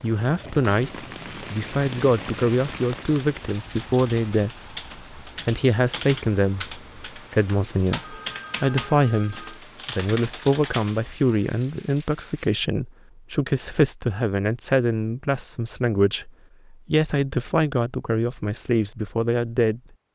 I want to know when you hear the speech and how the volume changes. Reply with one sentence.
You can hear the speech from 0.0 to 19.8 s, at a steady volume.